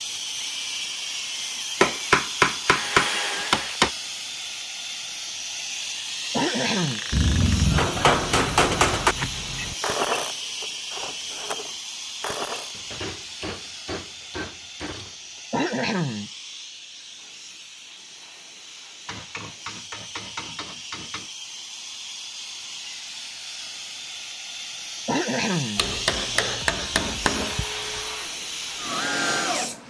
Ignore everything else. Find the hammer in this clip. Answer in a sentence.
The hammer can be heard from 1.8 to 3.9 s, from 7.1 to 9.2 s, from 12.7 to 15.2 s, from 19.1 to 21.3 s and from 25.8 to 27.6 s.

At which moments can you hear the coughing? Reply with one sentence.
You can hear the coughing from 6.3 to 7.0 s, from 15.5 to 16.3 s and from 25.1 to 25.9 s.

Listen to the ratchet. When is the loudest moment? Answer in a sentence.
The volume of the ratchet peaks at 10 seconds.